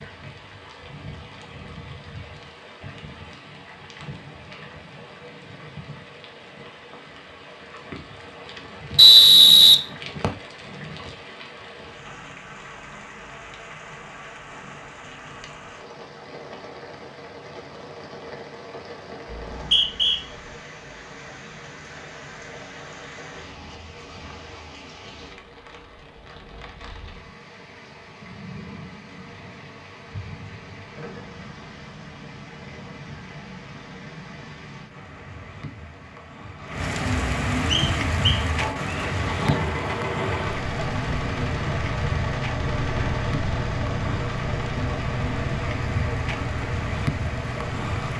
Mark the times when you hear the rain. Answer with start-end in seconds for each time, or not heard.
0.0-48.1.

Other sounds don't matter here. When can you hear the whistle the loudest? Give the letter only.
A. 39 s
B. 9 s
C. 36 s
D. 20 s
B.